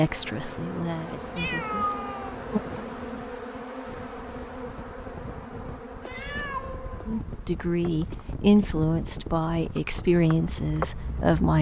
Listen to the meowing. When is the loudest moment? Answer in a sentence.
The volume of the meowing peaks at 2 seconds.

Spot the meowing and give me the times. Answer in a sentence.
You can hear the meowing from 1.4 to 2.9 s and from 6.0 to 8.2 s.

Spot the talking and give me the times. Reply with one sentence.
You can hear the talking from 0.0 to 1.8 s and from 7.0 to 11.5 s.